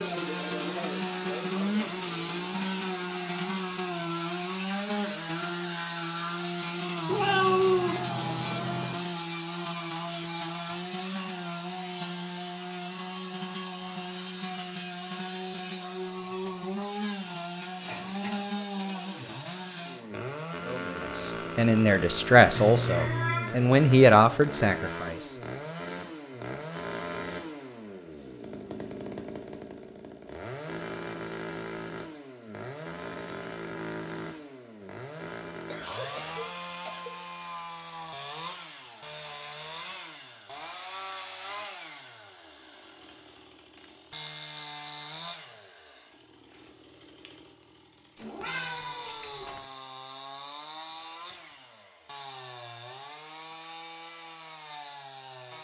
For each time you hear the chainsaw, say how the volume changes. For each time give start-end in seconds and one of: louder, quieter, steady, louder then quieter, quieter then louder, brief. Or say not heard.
0.0-55.5 quieter.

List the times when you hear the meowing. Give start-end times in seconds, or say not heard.
7.0-8.9, 22.6-23.6, 48.1-49.6.